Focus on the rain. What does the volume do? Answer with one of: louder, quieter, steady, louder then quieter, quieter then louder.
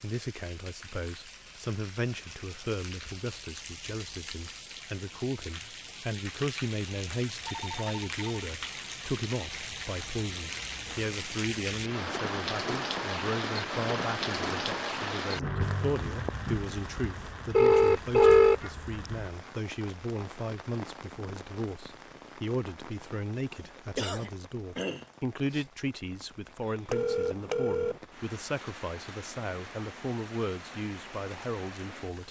louder then quieter.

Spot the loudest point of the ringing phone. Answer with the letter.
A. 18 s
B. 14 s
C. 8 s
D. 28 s
A.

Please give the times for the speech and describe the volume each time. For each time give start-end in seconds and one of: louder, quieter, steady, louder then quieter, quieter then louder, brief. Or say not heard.
0.0-32.2 steady.